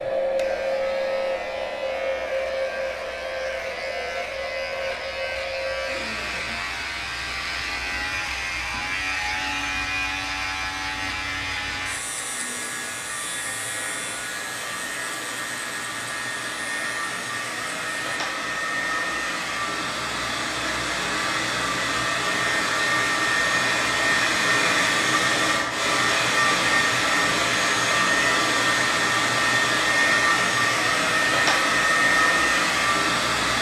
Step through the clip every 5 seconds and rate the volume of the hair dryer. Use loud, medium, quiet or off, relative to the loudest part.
medium, quiet, quiet, medium, loud, loud, loud.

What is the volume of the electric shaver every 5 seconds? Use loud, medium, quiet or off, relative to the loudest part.
medium, loud, loud, medium, off, off, off.